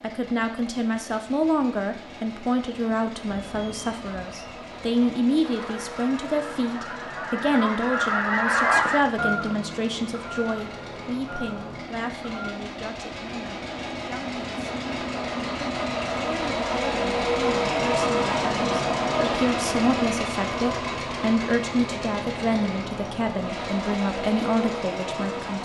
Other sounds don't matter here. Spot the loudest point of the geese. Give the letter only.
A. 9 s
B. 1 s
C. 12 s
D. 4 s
A.